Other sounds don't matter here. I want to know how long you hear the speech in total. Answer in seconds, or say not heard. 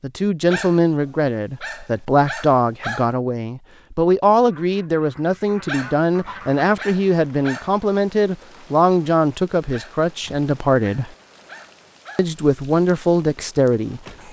13 s.